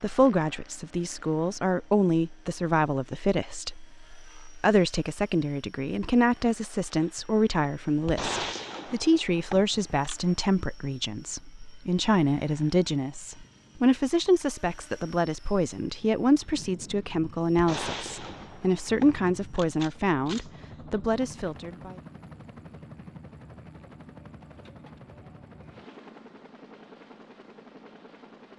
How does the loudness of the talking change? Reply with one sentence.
The volume of the talking stays about the same.